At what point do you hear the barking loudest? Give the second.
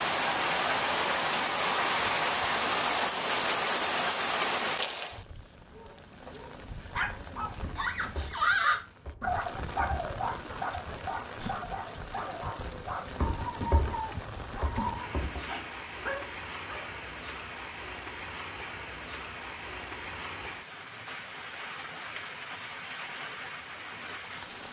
9 s.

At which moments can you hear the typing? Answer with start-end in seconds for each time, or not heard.
7.6-10.1, 13.2-15.4.